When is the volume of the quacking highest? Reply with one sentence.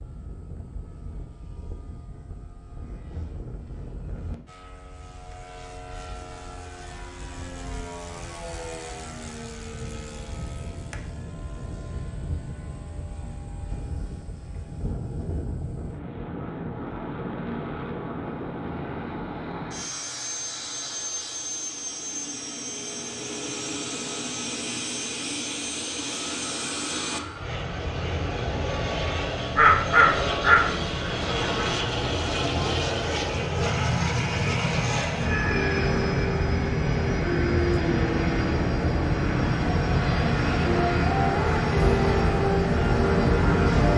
The volume of the quacking peaks at 30 seconds.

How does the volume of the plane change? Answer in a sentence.
The loudness of the plane goes up.